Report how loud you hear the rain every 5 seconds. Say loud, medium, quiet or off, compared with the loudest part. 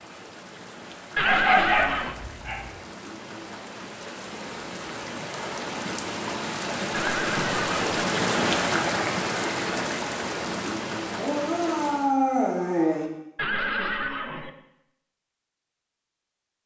quiet, loud, medium, off.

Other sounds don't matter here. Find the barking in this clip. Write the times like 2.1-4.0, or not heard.
1.2-2.7, 11.2-13.1.